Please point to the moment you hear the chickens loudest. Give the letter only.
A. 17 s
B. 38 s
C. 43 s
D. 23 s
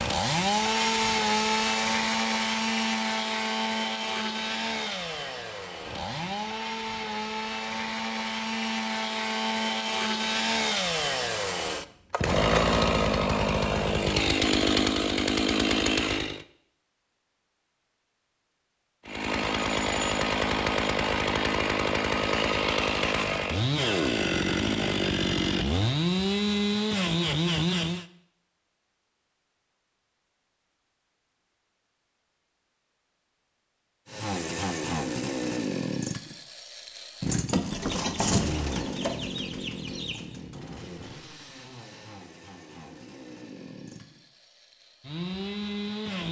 B.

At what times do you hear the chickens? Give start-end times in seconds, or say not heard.
37.5-40.2.